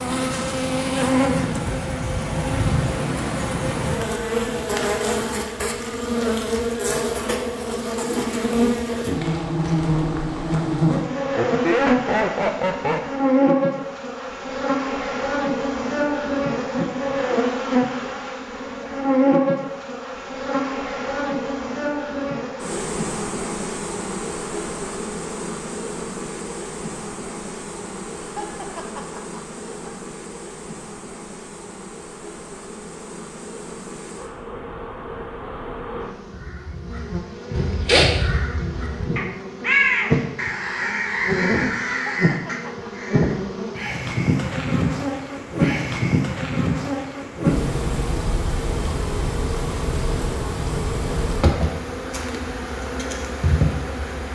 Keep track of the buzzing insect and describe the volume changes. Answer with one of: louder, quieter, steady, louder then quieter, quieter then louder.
quieter then louder.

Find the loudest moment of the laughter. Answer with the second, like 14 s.
12 s.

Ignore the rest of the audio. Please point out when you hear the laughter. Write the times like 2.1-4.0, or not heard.
11.3-13.0, 28.2-29.9, 41.9-42.9.